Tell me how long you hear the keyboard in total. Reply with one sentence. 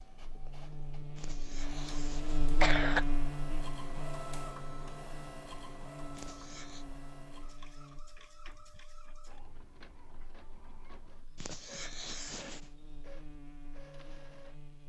You can't hear the keyboard here.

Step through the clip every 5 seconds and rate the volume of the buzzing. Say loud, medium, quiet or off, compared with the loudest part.
loud, quiet, quiet.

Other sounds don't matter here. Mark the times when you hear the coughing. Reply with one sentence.
You can hear the coughing from 1.1 to 3.0 s, from 6.2 to 6.8 s and from 11.4 to 12.6 s.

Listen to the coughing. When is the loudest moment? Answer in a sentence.
The volume of the coughing peaks at 3 seconds.